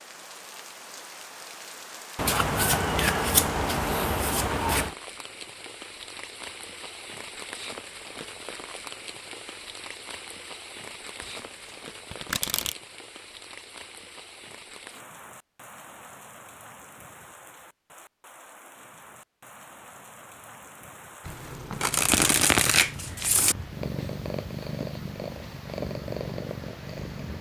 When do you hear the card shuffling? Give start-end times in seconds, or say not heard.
2.1-5.0, 12.1-12.8, 21.8-23.6.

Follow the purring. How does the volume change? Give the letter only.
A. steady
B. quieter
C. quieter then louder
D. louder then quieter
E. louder
C.